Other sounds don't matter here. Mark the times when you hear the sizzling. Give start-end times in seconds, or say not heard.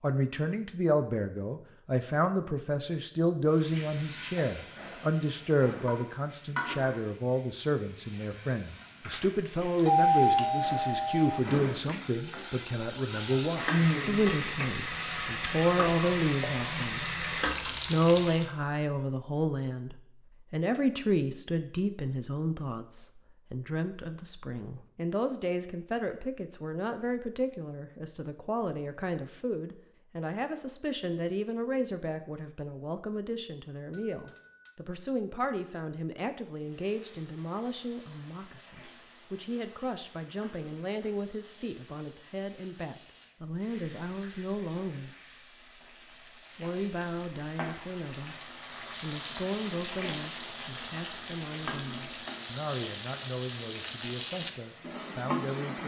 3.5-18.6, 36.5-55.8.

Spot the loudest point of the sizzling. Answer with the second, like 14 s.
14 s.